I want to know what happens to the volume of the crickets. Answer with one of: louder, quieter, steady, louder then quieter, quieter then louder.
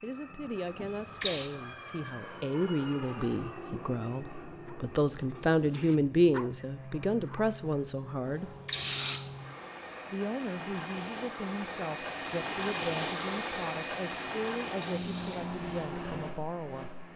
steady.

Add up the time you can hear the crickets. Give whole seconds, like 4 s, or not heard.
17 s.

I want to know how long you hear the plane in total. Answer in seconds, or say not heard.
17 s.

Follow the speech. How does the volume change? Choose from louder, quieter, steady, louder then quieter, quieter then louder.
louder then quieter.